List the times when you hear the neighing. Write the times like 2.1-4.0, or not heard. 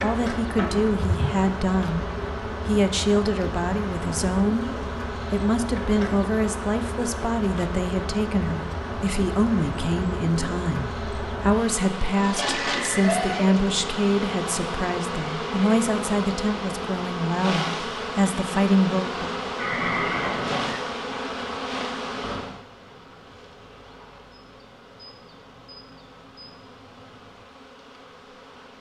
0.6-1.3, 12.4-13.6, 19.6-20.8.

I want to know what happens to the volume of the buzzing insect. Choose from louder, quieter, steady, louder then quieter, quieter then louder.
quieter.